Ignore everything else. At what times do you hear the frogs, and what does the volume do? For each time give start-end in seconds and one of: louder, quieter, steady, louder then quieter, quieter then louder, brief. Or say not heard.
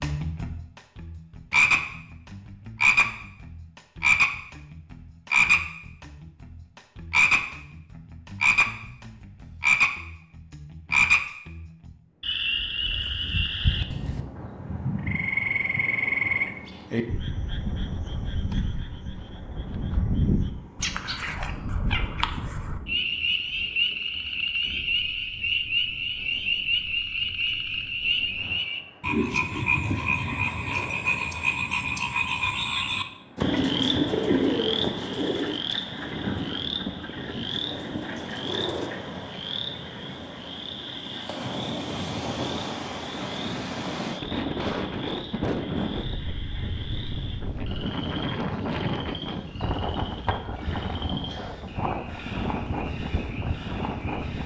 0.0-54.4 quieter.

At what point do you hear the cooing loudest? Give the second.
34 s.